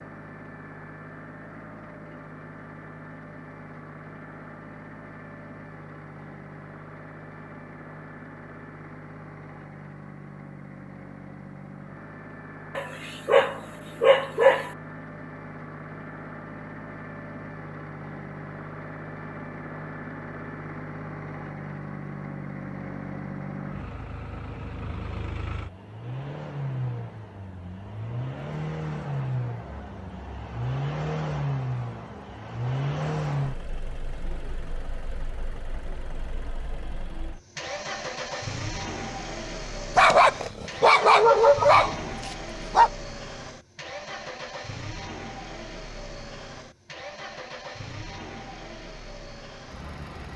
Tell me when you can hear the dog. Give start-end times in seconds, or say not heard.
12.8-14.7, 40.0-42.9.